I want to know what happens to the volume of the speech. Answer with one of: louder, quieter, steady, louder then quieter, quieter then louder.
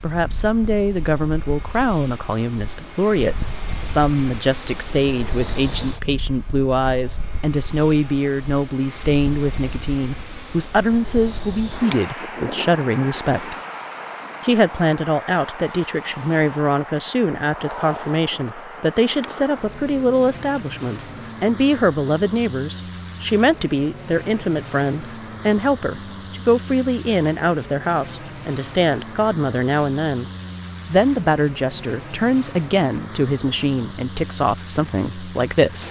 steady.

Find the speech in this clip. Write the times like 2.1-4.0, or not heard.
0.0-13.6, 14.4-30.2, 30.9-35.8.